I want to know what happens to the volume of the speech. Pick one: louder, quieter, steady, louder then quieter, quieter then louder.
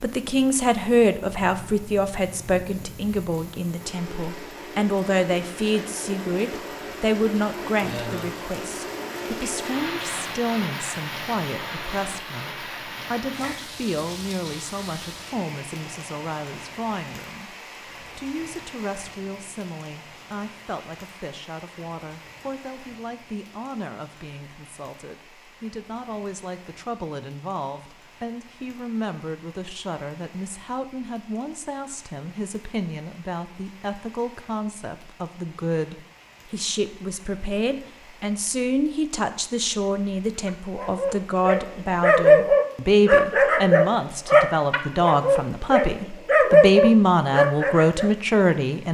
quieter then louder.